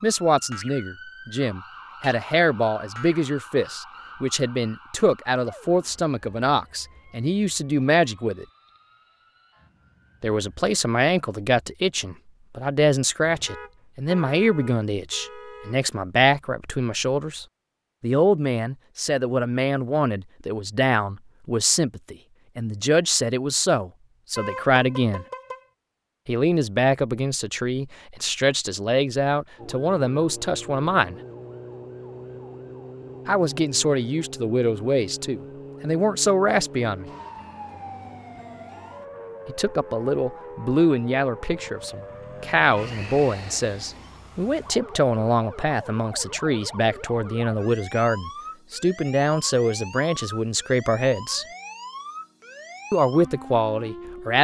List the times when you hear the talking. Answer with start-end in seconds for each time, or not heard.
0.0-8.4, 10.2-25.2, 26.2-31.1, 33.2-37.0, 39.5-51.5, 52.9-54.3.